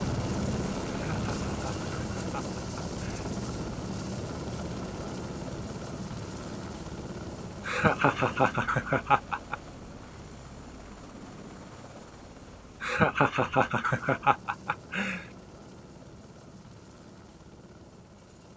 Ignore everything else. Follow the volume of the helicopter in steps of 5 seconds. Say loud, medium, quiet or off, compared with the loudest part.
loud, medium, quiet, quiet.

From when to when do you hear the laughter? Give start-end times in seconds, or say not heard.
0.8-3.4, 7.7-9.6, 12.8-15.2.